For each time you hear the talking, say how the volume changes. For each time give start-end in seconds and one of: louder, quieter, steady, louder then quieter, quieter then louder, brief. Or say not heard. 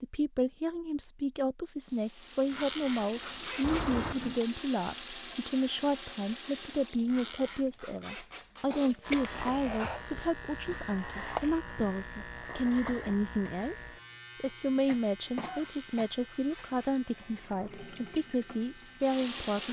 0.0-19.6 steady.